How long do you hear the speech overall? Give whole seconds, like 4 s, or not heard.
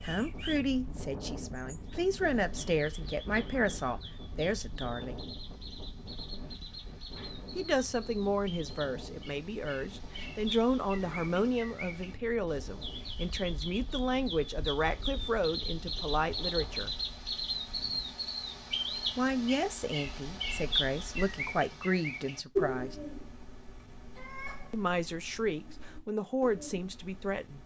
21 s.